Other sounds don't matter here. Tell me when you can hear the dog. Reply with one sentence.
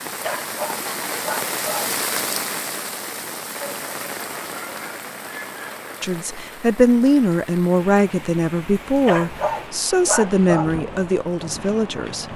You can hear the dog from 0.2 to 1.9 s and from 9.1 to 10.7 s.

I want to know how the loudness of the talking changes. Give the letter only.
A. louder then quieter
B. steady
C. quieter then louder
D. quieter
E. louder
D.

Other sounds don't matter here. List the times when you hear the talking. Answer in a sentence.
You can hear the talking from 6.0 to 12.3 s.